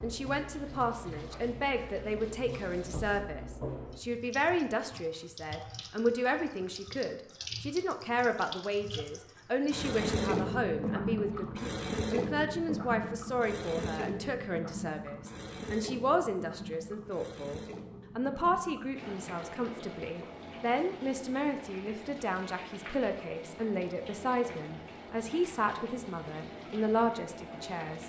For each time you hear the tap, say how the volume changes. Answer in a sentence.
The tap can be heard from 0.0 to 28.0 s, getting louder then quieter.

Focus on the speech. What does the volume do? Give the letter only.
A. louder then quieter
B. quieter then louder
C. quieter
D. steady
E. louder
D.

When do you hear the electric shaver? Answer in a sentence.
The electric shaver can't be heard in this clip.